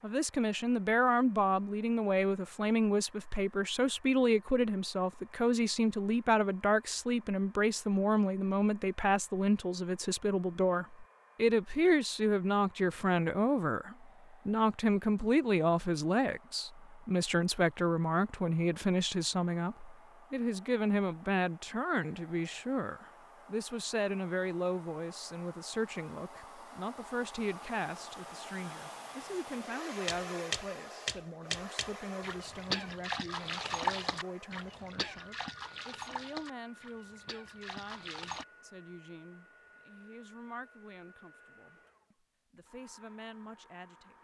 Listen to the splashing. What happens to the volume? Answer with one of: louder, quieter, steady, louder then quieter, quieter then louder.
quieter.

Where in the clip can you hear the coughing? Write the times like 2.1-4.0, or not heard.
not heard.